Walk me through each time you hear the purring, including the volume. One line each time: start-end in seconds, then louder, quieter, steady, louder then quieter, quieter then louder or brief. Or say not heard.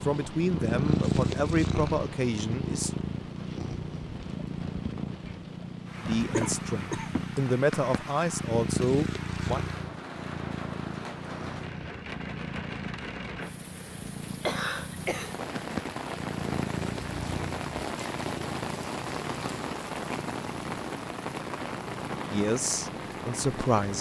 0.0-23.9 quieter.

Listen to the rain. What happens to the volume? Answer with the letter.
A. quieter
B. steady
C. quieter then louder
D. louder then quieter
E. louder
E.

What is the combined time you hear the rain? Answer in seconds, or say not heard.
24 s.